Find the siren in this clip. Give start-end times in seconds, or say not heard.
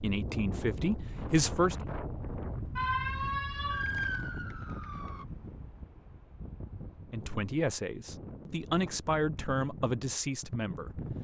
2.8-5.2.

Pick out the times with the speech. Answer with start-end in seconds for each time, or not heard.
0.0-1.9, 7.1-11.1.